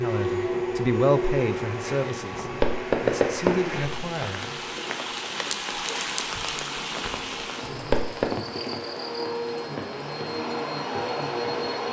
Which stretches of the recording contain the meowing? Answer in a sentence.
You can't hear the meowing here.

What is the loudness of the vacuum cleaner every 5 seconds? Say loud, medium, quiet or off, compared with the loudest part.
loud, medium, loud.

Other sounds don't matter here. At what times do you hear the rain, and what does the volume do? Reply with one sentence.
You can hear the rain from 0.0 to 11.7 s, getting louder then quieter.